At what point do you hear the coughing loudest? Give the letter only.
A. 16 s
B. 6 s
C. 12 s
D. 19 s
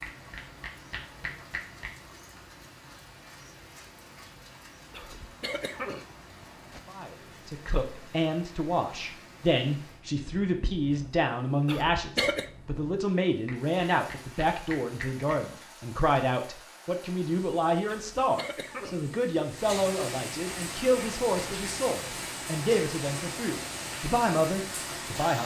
C.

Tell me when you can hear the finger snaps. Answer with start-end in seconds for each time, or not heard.
0.0-1.9, 13.4-15.3.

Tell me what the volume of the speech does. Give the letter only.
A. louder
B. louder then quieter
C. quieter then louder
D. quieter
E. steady
E.